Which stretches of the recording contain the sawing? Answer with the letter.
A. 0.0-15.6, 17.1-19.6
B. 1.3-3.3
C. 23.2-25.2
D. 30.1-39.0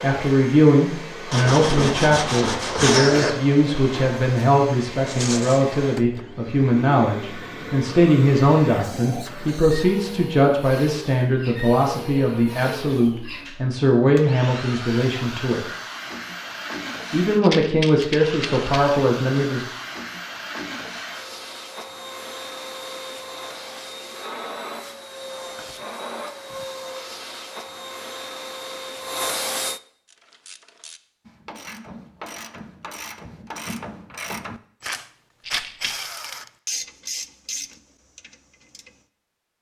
B.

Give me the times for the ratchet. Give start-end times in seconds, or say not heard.
30.1-39.0.